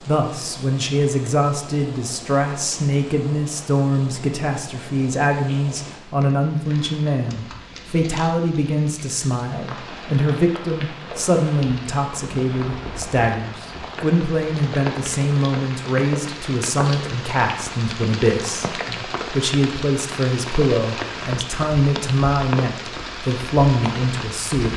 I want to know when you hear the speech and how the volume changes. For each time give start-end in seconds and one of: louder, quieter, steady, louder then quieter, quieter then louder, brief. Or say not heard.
0.1-24.7 steady.